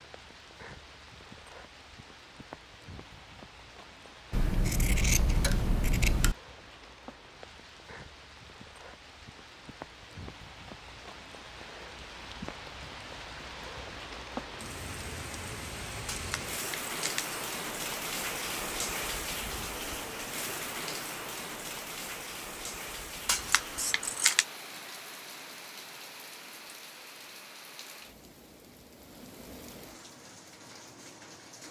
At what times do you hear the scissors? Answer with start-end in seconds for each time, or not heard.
4.3-6.3, 16.1-17.4, 23.2-24.4.